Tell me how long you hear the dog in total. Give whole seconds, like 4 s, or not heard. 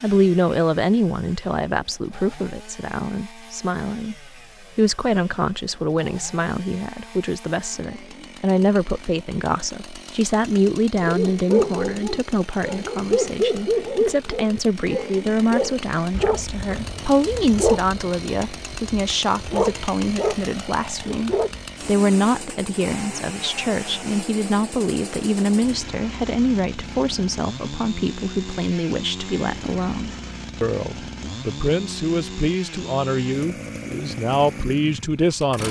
11 s.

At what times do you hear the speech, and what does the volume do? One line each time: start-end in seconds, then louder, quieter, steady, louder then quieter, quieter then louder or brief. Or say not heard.
0.0-35.6 steady.